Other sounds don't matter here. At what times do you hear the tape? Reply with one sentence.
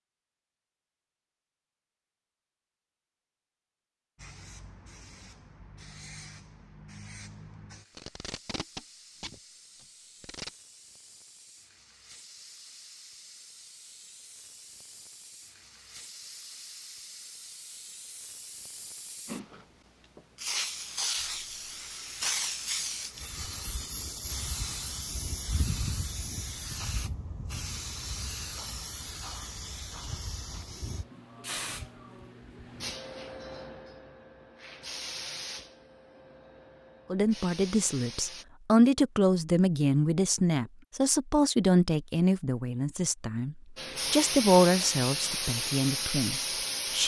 You can hear the tape from 7.9 to 10.5 s.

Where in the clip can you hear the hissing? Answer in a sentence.
You can hear the hissing from 4.2 to 38.5 s and from 43.8 to 47.0 s.